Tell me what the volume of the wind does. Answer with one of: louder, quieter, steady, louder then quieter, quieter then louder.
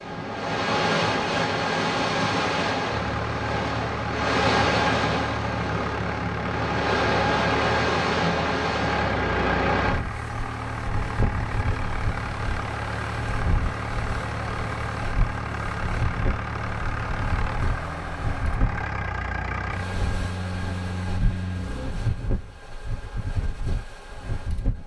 quieter.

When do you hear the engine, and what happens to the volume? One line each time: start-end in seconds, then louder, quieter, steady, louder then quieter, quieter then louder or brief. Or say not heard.
2.9-21.9 steady.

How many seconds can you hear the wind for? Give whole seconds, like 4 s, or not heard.
25 s.